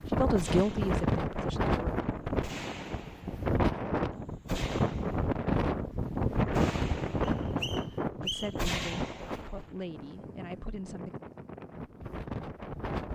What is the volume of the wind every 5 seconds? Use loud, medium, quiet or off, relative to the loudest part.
loud, loud, medium.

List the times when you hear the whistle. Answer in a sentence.
You can hear the whistle from 7.2 to 8.7 s.